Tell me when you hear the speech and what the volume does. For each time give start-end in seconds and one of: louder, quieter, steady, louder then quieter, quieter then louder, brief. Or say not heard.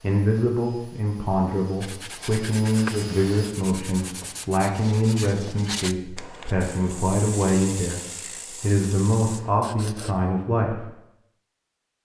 0.0-10.9 steady.